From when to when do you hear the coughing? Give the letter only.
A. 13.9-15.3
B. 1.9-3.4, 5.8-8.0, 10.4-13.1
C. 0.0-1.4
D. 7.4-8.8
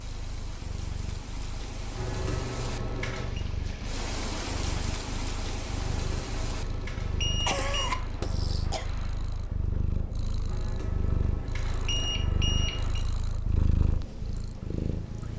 D.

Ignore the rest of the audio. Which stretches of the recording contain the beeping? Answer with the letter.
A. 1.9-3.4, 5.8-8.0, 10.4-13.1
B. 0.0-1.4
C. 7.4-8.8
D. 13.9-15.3
A.